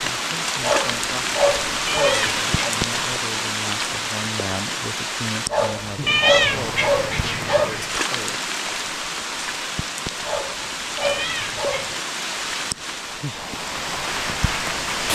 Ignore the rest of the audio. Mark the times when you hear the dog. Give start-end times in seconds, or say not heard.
0.6-2.7, 5.5-7.7, 10.2-11.9.